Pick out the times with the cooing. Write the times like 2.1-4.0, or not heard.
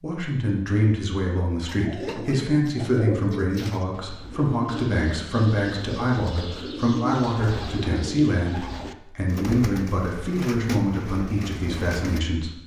1.6-12.2.